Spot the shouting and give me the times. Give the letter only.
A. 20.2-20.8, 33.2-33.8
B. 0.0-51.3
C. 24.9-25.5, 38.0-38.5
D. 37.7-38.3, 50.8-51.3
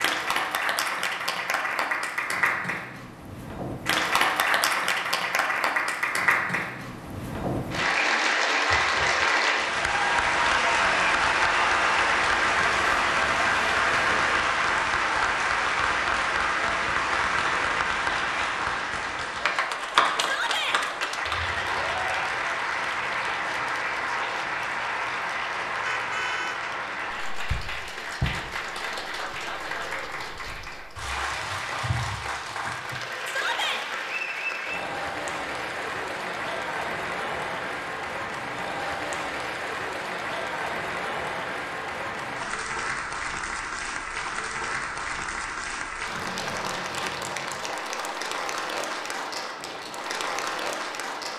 A.